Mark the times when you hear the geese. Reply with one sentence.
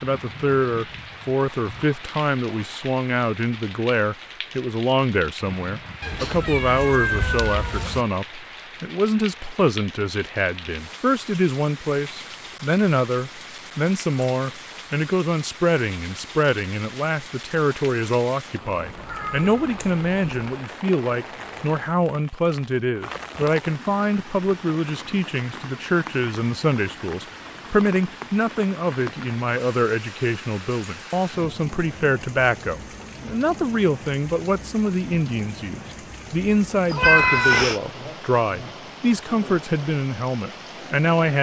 The geese can't be heard in this clip.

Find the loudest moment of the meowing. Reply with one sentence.
The volume of the meowing peaks at 37 seconds.